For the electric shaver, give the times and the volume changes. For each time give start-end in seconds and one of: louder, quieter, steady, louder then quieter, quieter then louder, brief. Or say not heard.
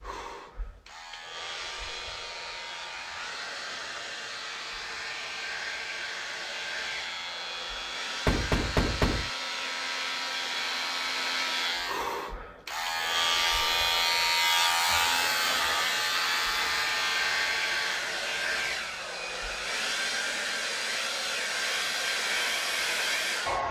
0.0-18.1 louder.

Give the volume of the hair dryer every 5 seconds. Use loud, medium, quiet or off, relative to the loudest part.
medium, medium, medium, loud, loud.